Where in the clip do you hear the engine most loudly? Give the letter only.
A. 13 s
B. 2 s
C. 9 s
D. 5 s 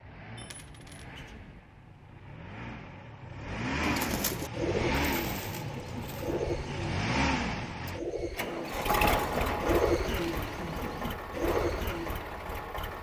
C.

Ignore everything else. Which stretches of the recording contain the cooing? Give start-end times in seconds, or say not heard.
3.8-12.2.